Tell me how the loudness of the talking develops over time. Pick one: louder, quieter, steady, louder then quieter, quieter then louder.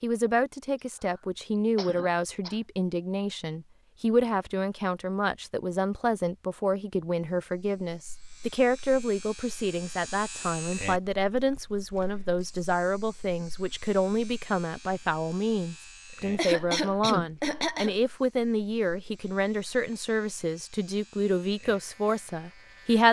steady.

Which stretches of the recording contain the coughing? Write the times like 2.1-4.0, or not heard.
1.1-2.6, 16.2-17.9.